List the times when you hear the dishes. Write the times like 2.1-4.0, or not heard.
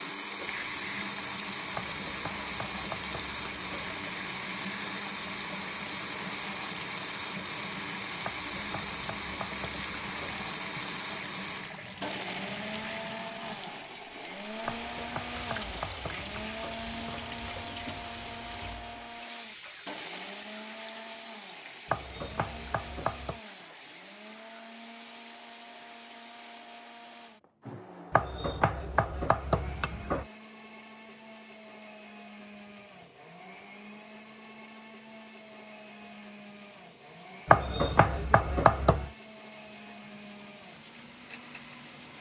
not heard.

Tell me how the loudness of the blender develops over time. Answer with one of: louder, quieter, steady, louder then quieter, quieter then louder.
quieter.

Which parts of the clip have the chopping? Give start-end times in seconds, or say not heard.
1.7-4.0, 8.2-10.4, 14.7-17.4, 21.9-23.4, 28.1-30.2, 37.5-39.1.